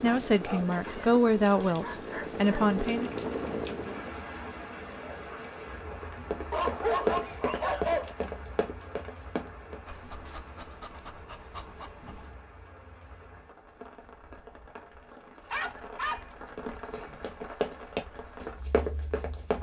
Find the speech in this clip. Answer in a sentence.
The speech can be heard from 0.0 to 3.1 s.